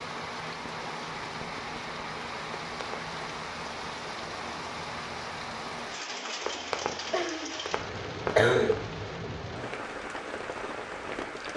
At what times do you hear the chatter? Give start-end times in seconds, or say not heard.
not heard.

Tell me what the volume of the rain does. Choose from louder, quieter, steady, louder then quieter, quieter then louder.
steady.